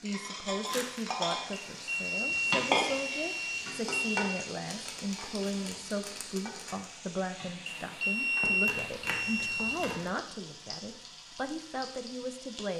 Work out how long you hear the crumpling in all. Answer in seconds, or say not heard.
4 s.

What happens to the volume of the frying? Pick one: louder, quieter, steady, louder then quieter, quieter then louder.
quieter.